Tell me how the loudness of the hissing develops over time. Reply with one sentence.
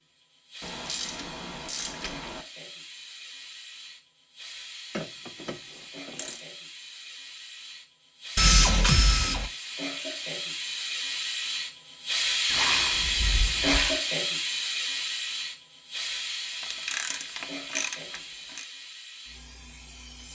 The volume of the hissing goes up, then down.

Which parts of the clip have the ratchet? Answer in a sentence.
The ratchet can be heard from 0.6 to 2.5 s, from 5.0 to 6.4 s, from 8.3 to 9.5 s, from 12.5 to 14.0 s and from 16.6 to 18.6 s.